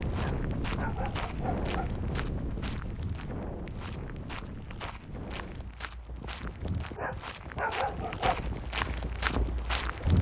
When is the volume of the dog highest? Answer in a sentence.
The volume of the dog peaks at 8 seconds.